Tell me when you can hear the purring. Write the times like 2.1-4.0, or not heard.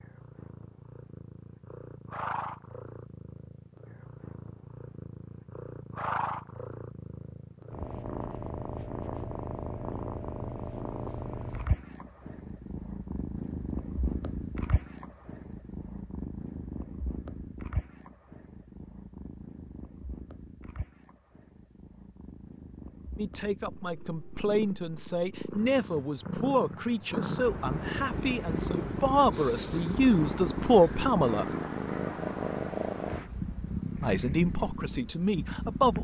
0.0-35.9.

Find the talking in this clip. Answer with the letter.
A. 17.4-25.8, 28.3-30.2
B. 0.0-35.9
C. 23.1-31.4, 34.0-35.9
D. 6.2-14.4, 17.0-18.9
C.